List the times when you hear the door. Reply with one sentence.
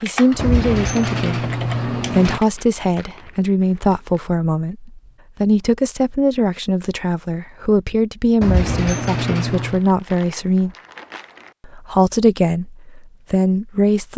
You can hear the door from 0.3 to 2.4 s and from 8.4 to 9.8 s.